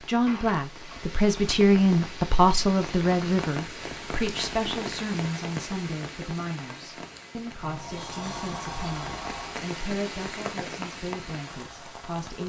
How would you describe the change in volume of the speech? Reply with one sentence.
The loudness of the speech goes down.